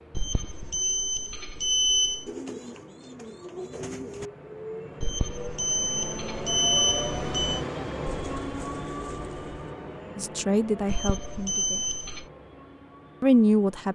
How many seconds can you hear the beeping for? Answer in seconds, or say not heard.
6 s.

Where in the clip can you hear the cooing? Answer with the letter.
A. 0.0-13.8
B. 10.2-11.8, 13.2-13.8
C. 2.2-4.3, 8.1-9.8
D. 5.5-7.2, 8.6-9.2
C.